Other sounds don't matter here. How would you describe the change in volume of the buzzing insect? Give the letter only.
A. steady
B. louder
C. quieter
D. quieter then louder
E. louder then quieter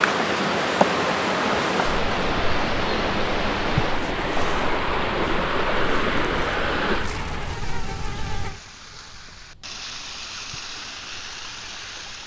C.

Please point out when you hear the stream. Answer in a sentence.
You can hear the stream from 0.0 to 12.2 s.